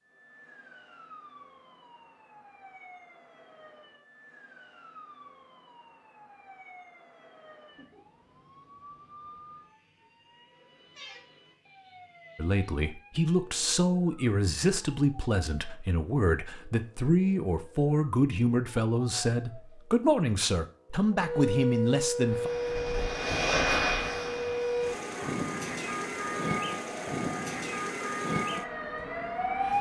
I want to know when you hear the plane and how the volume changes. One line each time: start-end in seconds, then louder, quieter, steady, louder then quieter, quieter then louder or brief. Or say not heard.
22.1-29.7 quieter.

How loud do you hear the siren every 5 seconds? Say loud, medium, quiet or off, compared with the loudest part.
quiet, quiet, quiet, quiet, loud, loud.